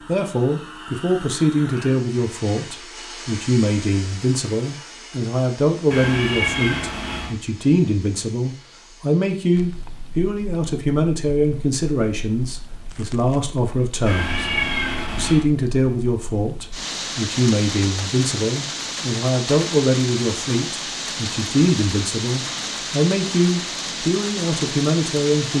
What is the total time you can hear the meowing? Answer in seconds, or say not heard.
3 s.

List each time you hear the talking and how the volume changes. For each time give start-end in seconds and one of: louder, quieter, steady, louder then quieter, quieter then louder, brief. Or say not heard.
0.1-14.4 steady
15.2-25.5 steady.